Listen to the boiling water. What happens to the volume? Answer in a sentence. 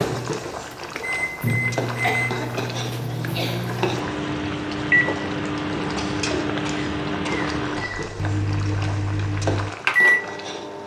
The volume of the boiling water stays about the same.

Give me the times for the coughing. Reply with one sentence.
The coughing can be heard from 2.0 to 3.6 s and from 6.0 to 8.0 s.